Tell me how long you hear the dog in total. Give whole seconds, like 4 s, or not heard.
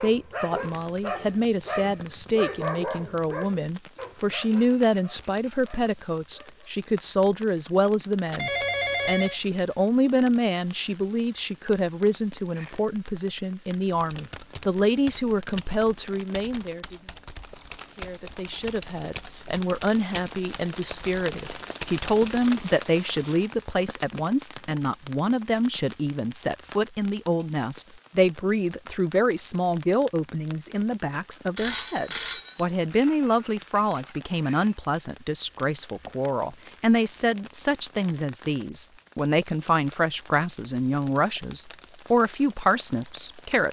7 s.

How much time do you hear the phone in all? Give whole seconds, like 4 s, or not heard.
2 s.